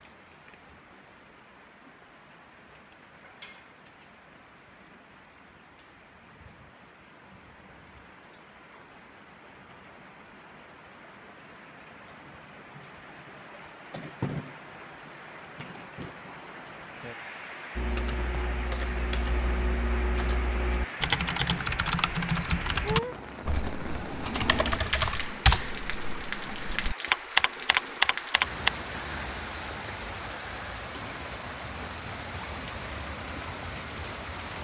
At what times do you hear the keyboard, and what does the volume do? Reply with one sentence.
The keyboard can be heard from 17.8 to 28.7 s, getting louder.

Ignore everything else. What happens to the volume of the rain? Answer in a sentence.
The loudness of the rain goes up.